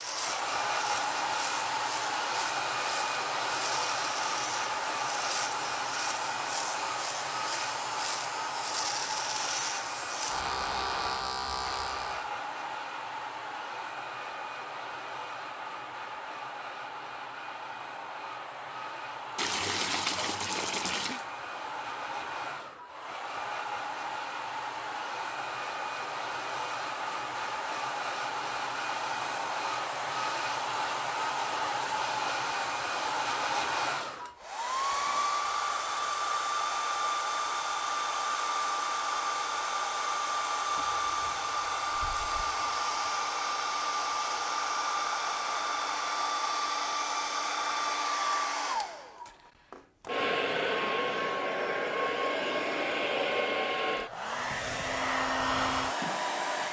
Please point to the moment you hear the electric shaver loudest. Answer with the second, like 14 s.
11 s.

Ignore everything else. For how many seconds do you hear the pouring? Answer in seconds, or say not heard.
4 s.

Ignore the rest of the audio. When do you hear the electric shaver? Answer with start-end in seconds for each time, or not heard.
0.0-12.3.